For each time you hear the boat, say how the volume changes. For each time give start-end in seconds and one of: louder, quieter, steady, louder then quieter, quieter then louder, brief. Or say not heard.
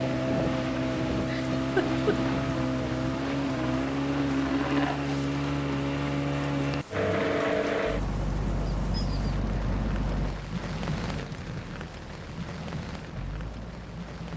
0.0-14.3 quieter.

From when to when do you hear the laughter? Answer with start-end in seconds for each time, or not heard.
1.1-2.1.